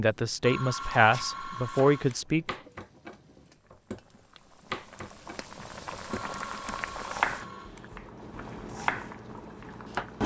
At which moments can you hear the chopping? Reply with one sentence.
The chopping can be heard from 0.8 to 10.1 s.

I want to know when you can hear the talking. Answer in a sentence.
You can hear the talking from 0.0 to 2.5 s.